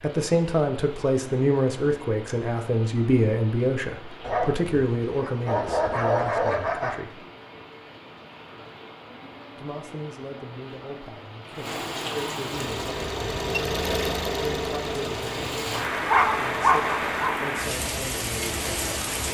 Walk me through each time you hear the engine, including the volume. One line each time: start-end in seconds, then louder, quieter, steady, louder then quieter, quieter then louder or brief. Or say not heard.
12.5-17.3 quieter.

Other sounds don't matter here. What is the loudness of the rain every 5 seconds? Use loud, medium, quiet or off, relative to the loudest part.
quiet, quiet, medium, loud.